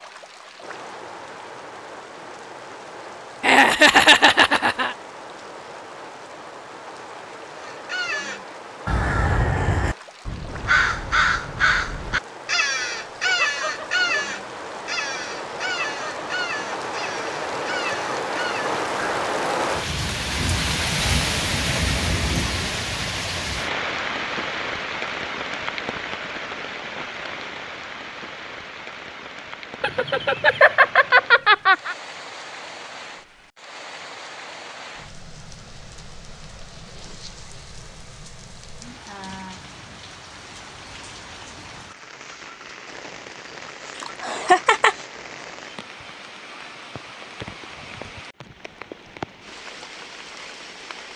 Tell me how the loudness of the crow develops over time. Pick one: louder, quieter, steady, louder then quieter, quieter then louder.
quieter.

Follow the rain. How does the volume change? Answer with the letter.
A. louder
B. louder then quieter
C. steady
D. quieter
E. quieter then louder
B.